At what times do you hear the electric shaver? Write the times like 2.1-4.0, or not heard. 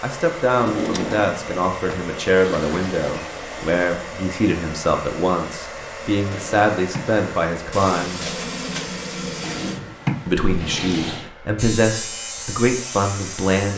11.6-13.7.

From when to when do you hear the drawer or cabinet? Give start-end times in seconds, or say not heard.
0.6-2.0, 6.3-7.2, 9.4-11.3.